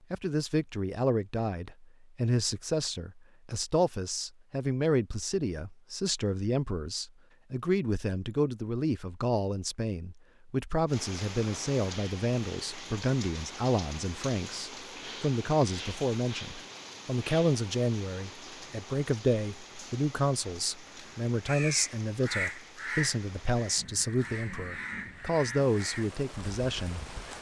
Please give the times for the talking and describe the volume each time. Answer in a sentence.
The talking can be heard from 0.1 to 27.1 s, at a steady volume.